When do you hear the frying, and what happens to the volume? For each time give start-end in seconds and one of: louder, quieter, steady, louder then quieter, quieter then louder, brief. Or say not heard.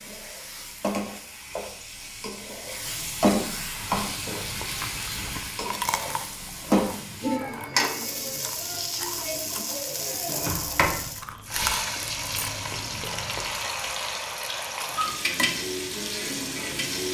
0.0-17.0 steady.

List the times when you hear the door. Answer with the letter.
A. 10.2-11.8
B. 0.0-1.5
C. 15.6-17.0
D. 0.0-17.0
A.